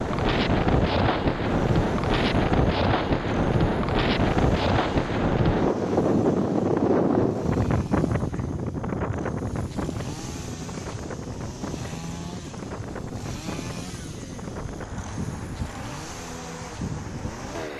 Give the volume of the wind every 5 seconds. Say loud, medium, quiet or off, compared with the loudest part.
loud, loud, quiet, quiet.